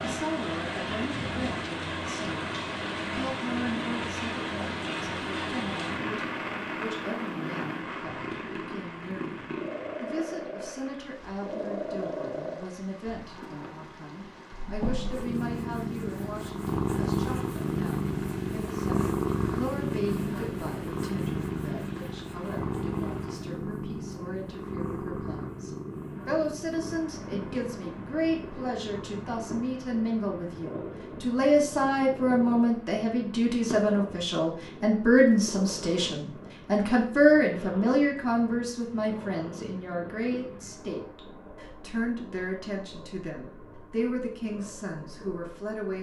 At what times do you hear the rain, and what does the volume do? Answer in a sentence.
You can hear the rain from 0.0 to 23.6 s, getting quieter.